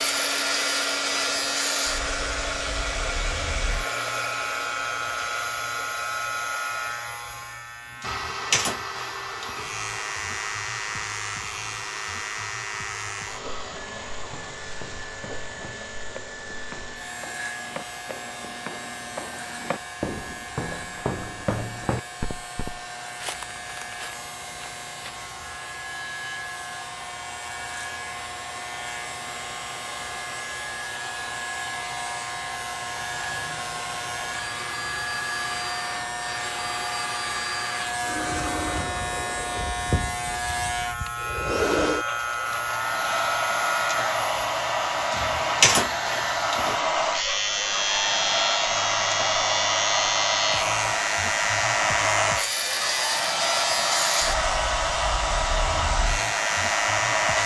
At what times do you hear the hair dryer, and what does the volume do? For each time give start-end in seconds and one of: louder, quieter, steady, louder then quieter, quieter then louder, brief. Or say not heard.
0.0-57.3 quieter then louder.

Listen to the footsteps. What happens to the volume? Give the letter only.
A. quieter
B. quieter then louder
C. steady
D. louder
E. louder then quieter
E.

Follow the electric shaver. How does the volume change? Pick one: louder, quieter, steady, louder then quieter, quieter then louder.
quieter then louder.